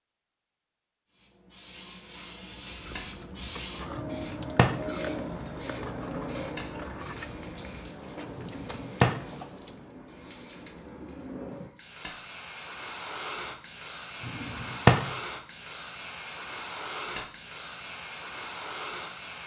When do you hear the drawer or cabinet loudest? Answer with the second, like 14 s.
15 s.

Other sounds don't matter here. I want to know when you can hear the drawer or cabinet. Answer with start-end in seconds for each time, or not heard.
4.0-4.7, 8.3-9.2, 14.2-15.1.